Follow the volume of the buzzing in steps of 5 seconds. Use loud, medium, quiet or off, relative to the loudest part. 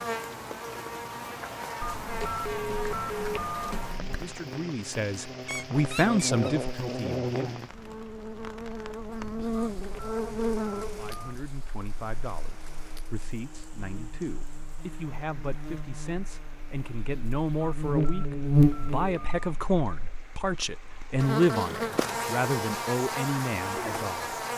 medium, medium, medium, loud, loud.